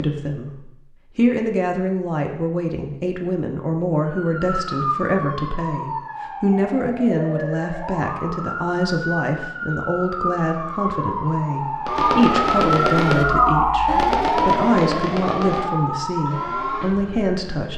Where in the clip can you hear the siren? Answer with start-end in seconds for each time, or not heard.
4.0-17.7.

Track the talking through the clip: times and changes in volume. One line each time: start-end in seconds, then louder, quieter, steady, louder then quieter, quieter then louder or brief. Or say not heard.
0.0-17.7 steady.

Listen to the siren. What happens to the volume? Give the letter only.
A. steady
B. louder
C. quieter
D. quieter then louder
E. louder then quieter
E.